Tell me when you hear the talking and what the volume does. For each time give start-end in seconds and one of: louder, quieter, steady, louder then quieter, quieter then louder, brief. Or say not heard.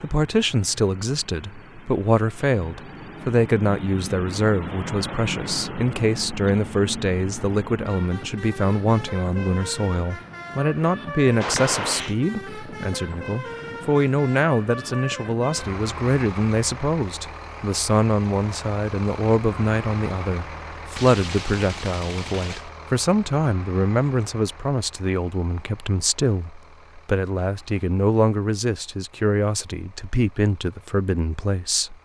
0.0-31.9 steady.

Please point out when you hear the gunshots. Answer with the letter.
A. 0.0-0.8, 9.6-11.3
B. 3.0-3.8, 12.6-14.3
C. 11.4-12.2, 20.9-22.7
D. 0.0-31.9
C.